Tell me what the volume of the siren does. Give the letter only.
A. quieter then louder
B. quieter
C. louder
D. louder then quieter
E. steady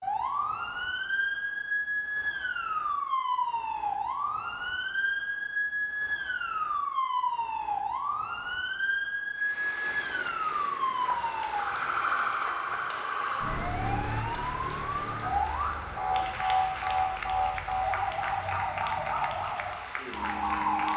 E.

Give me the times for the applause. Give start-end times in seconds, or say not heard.
9.3-20.9.